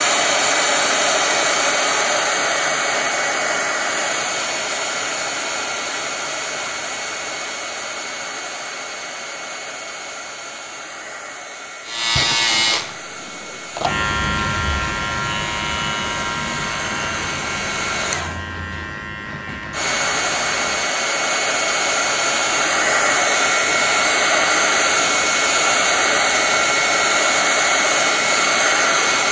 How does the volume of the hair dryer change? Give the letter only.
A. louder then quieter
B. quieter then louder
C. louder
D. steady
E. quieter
B.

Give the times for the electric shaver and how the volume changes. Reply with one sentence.
You can hear the electric shaver from 11.8 to 20.9 s, getting quieter.